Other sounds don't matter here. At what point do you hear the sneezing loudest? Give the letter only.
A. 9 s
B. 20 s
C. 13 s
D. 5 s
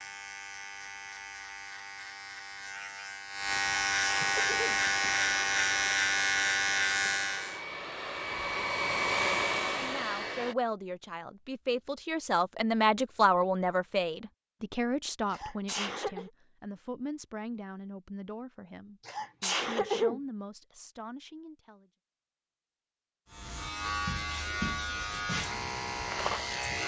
B.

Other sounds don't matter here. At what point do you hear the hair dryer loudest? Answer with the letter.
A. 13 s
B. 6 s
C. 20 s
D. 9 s
D.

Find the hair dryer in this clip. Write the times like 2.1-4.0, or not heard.
4.5-10.6.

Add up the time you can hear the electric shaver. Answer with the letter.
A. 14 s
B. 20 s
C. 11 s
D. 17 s
C.